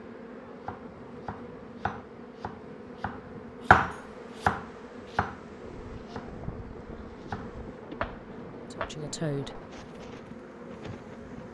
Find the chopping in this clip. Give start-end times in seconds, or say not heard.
0.7-8.9.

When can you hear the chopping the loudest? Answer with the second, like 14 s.
4 s.